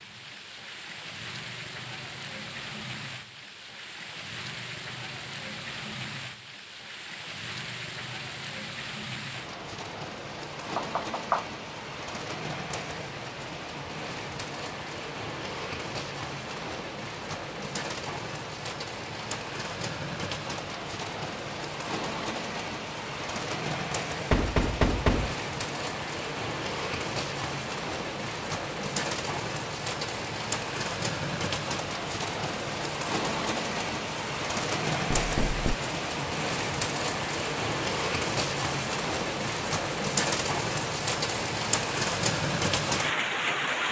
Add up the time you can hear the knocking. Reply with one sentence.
You can hear the knocking for 2 seconds altogether.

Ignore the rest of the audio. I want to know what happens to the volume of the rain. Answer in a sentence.
The loudness of the rain goes up.